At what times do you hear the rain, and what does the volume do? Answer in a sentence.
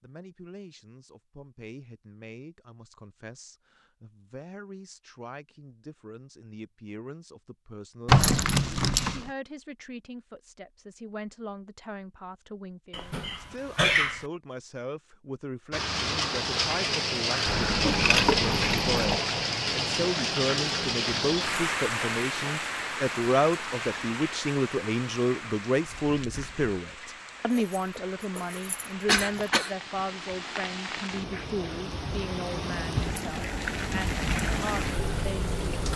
You can hear the rain from 15.7 to 35.9 s, getting quieter then louder.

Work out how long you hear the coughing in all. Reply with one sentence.
The coughing can be heard for 2 seconds in total.